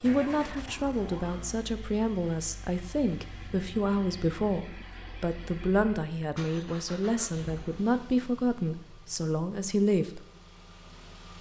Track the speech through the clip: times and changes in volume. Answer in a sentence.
The speech can be heard from 0.0 to 10.2 s, at a steady volume.